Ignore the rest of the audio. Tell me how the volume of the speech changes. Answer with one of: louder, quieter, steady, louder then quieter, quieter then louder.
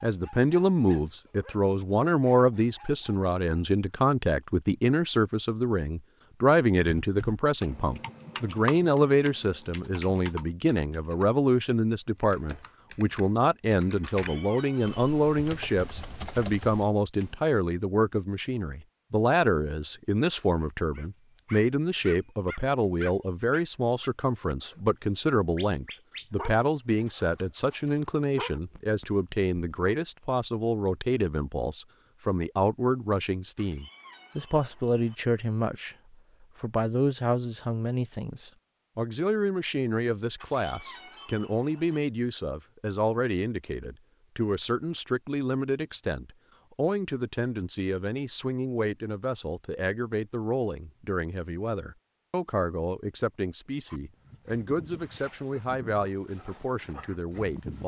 quieter.